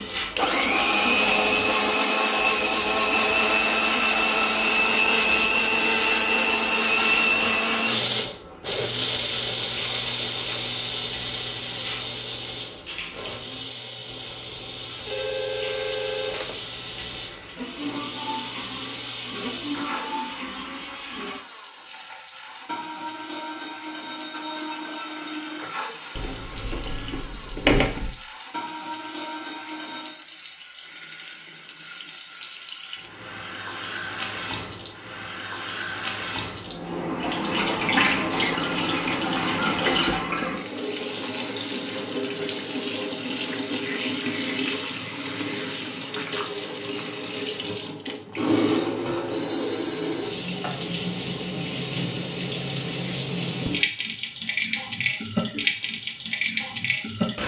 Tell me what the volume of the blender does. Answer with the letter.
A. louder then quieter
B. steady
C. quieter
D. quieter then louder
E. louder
C.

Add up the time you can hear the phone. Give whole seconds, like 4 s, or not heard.
2 s.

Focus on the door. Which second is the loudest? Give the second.
28 s.